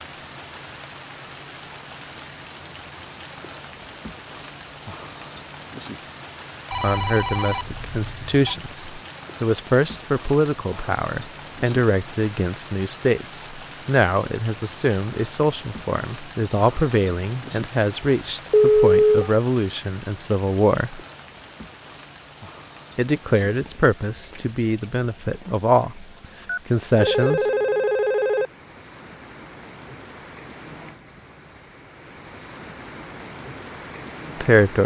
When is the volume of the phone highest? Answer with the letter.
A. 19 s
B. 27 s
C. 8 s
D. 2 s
A.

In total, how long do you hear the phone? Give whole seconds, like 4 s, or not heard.
5 s.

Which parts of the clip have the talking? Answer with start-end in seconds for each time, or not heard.
6.8-21.0, 22.9-26.1, 26.6-27.5, 34.4-34.8.